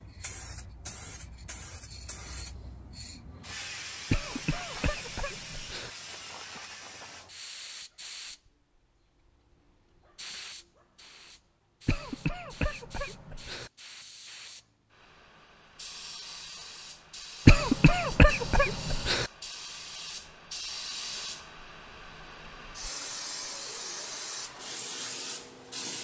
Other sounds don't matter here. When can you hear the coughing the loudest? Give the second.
18 s.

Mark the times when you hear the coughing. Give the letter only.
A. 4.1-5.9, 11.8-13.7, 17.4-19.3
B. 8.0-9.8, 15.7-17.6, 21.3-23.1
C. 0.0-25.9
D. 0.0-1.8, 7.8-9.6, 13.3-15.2
A.